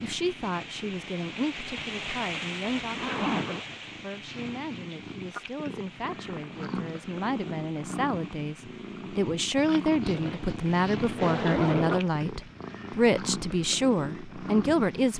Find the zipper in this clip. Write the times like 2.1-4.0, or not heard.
2.8-3.6, 10.1-12.1.